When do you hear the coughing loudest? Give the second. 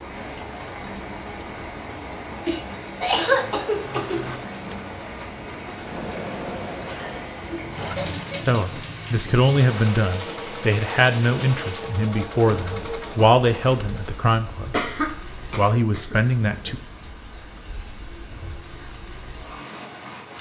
3 s.